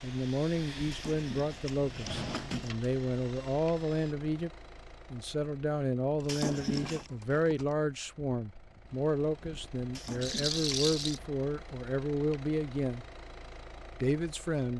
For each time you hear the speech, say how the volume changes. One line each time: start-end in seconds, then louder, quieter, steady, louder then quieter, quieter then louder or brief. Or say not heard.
0.0-4.5 quieter then louder
5.1-13.1 steady
14.0-14.7 brief.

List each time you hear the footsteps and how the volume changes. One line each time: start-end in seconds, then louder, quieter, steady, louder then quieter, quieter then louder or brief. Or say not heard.
not heard.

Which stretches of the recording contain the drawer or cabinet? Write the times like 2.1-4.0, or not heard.
0.9-2.7, 6.2-7.1, 9.9-10.8.